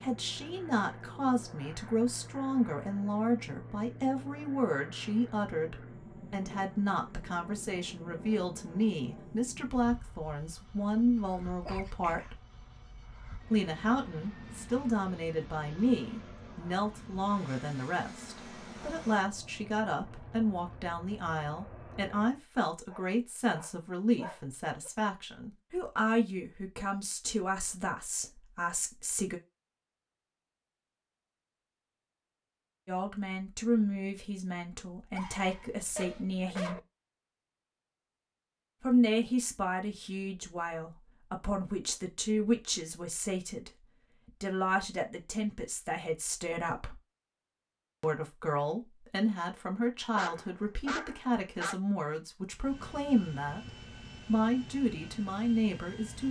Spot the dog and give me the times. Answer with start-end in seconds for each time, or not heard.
11.6-12.3, 22.9-24.9, 35.1-36.8, 50.1-51.8.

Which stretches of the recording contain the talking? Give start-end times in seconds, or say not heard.
0.0-12.4, 13.5-29.4, 32.9-36.8, 38.8-43.7, 44.4-47.0, 48.0-56.2.